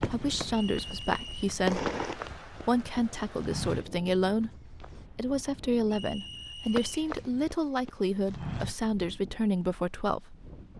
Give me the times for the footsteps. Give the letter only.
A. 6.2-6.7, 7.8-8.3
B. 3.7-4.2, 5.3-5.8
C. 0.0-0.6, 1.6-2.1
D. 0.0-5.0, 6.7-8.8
D.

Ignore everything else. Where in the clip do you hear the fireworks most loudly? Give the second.
2 s.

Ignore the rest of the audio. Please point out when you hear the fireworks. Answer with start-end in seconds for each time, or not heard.
0.0-0.6, 1.6-2.1.